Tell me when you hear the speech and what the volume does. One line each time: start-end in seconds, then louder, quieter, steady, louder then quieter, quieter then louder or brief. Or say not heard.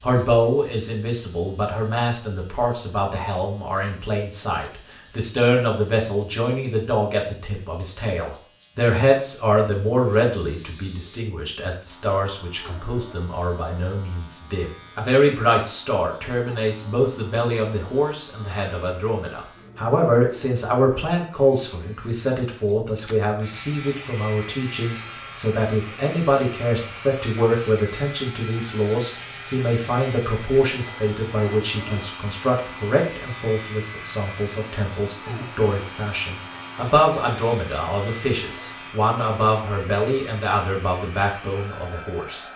0.0-42.5 steady.